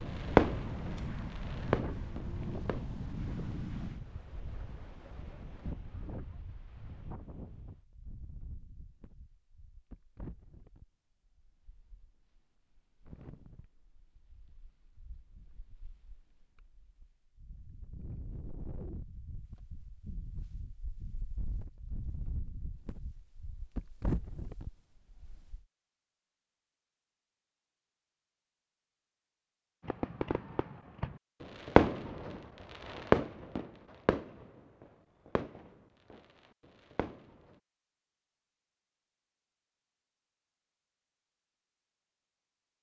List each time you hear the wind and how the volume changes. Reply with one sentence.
You can hear the wind from 0.0 to 25.6 s, getting quieter then louder.